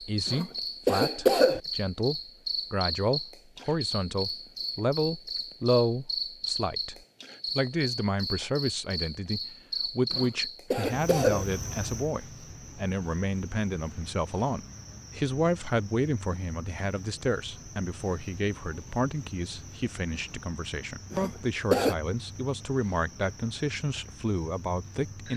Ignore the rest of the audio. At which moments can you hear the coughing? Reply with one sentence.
You can hear the coughing from 0.2 to 1.6 s, from 10.1 to 11.4 s and from 21.1 to 21.9 s.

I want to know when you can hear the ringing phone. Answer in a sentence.
You can't hear the ringing phone here.